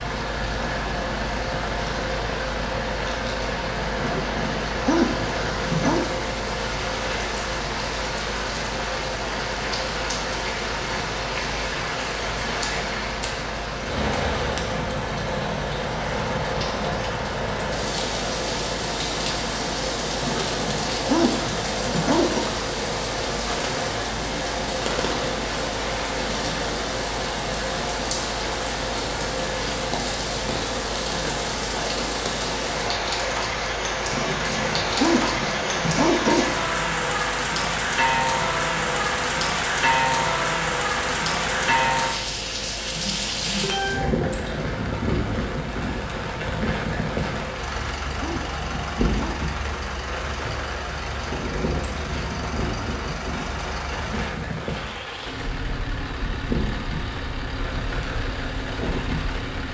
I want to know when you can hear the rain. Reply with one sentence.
The rain can be heard from 0.0 to 59.7 s.